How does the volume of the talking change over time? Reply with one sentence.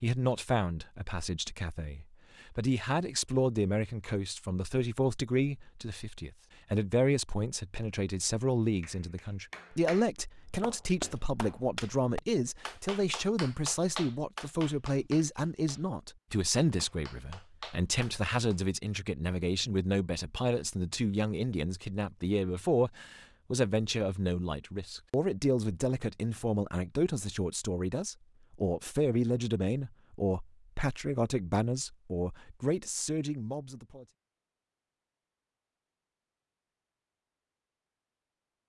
The loudness of the talking stays about the same.